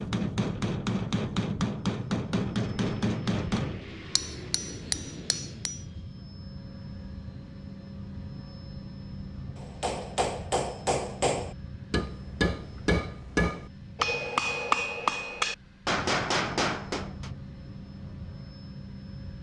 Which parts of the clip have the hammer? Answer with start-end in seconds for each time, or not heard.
0.0-5.8, 9.6-17.3.